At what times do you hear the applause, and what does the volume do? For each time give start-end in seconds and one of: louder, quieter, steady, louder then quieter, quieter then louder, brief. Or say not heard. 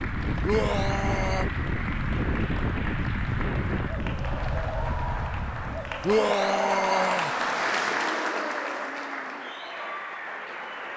0.0-10.9 louder then quieter.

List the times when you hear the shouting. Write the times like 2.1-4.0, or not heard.
0.4-1.4, 6.0-7.3.